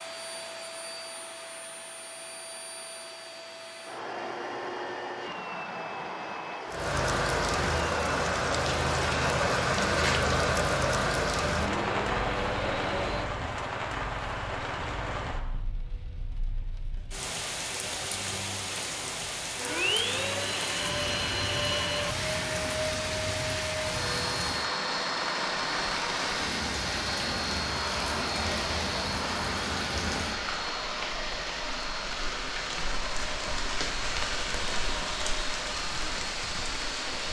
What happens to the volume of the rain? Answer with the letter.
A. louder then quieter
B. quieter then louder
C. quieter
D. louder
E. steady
C.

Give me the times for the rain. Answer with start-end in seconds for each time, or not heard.
6.7-37.2.